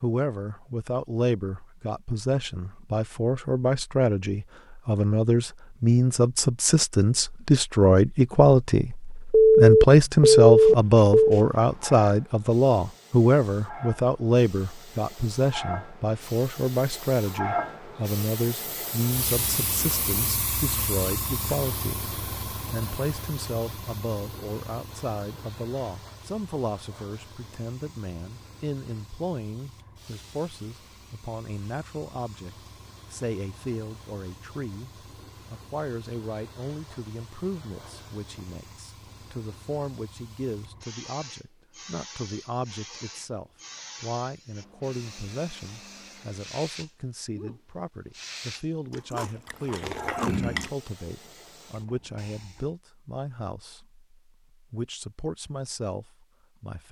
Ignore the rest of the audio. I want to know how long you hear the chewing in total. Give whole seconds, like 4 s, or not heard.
2 s.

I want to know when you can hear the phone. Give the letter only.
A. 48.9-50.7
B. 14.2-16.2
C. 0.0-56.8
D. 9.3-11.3
D.